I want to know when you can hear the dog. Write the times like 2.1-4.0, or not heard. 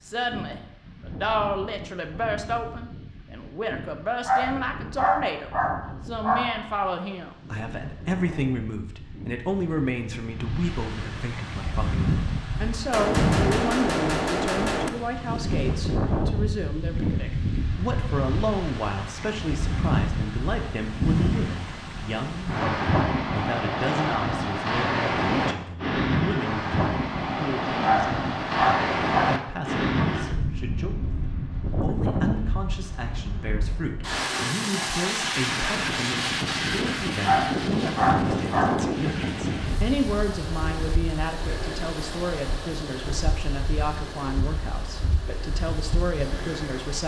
4.2-6.6, 27.8-29.4, 37.2-38.9.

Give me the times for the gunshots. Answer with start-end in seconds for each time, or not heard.
12.9-14.9.